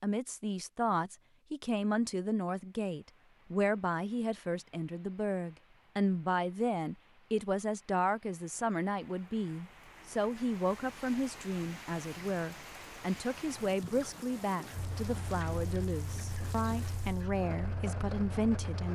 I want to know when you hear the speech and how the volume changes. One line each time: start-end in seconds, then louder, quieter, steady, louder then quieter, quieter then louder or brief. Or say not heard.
0.0-18.9 steady.